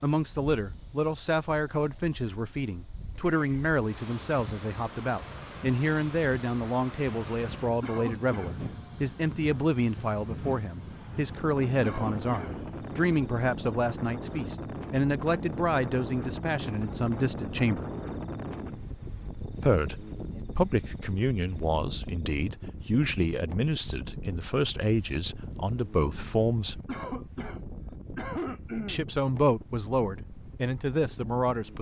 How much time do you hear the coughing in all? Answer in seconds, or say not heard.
4 s.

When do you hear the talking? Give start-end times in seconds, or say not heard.
0.0-17.9, 19.6-26.8, 28.9-31.7.